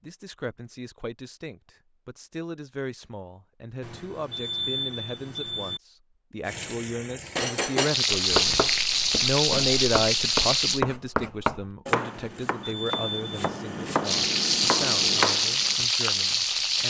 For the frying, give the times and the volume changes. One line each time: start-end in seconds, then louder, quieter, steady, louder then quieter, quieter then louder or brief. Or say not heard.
6.5-10.8 louder
14.0-16.8 brief.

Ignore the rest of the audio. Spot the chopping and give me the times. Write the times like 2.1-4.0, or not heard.
8.2-15.8.